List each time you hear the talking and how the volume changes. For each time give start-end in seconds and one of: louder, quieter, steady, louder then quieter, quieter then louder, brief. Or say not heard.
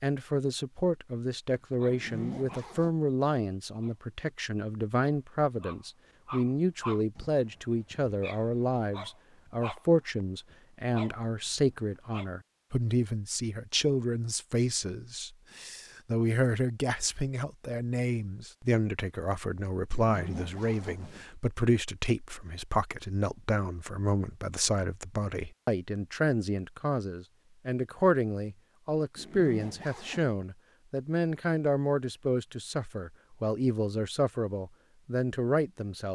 0.0-36.1 steady.